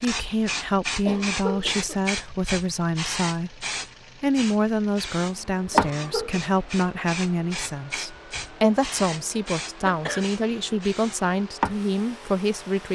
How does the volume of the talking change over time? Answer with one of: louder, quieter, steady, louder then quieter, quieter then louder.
steady.